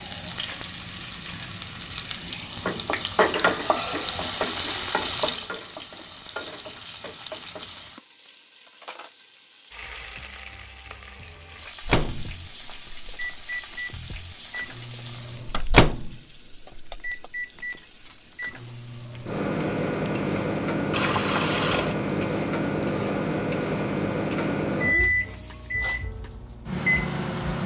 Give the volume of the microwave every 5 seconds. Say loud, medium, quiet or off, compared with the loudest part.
off, off, medium, loud, loud, loud.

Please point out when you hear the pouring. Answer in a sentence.
The pouring can be heard from 20.9 to 21.9 s.